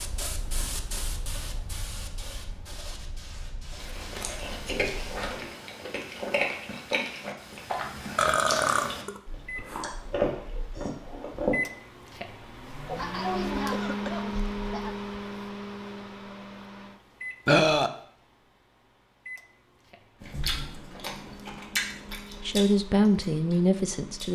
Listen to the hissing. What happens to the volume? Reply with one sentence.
The loudness of the hissing goes down.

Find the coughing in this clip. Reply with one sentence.
The coughing can be heard from 12.8 to 14.9 s.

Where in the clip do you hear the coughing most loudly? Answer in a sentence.
The loudest moment of the coughing is at 13 seconds.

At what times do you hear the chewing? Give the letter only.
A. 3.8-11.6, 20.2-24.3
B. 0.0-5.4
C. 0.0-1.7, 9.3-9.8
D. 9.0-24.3
A.